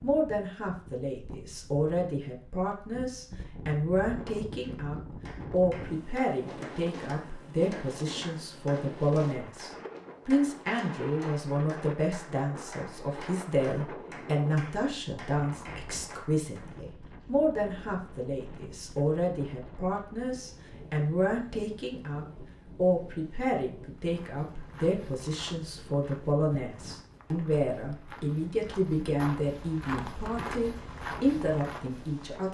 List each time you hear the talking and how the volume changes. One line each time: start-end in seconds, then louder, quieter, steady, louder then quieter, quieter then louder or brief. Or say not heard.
0.0-32.4 steady.